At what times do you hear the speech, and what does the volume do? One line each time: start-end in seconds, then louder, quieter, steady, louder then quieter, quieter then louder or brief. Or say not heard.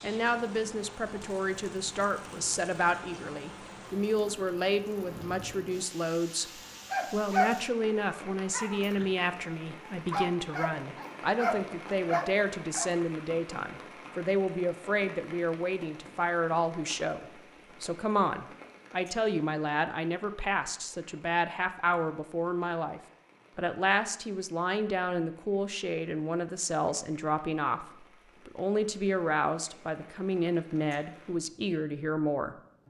0.0-32.5 steady.